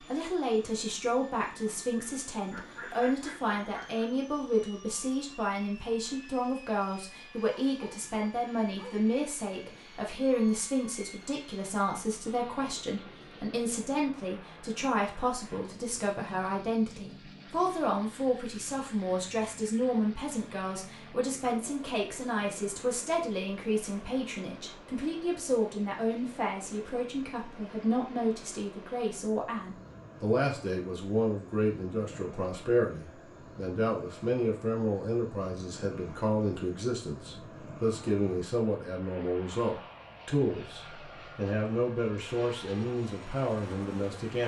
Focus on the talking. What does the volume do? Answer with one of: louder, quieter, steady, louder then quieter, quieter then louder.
steady.